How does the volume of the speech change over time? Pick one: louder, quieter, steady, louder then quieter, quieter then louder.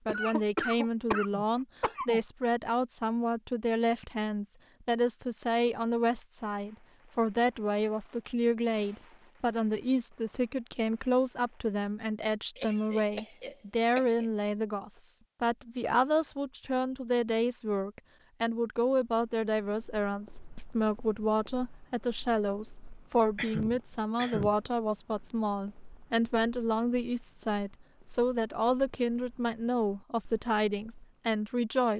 steady.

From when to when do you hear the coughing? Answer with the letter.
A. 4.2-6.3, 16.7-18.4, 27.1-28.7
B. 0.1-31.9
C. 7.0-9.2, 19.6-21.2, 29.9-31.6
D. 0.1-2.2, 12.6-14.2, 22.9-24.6
D.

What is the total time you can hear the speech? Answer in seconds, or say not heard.
32 s.